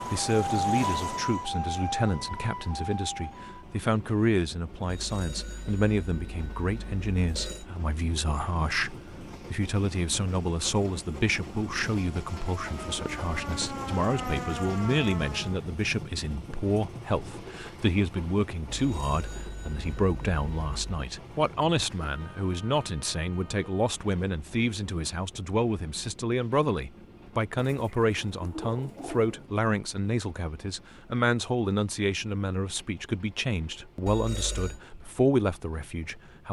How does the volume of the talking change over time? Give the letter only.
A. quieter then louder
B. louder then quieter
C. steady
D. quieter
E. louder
C.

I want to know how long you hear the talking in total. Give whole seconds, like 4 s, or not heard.
36 s.